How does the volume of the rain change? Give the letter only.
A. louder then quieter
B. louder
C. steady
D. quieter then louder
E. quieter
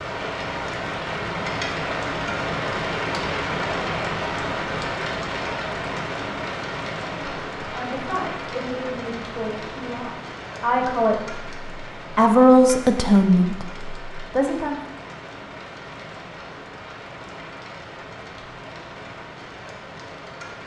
E.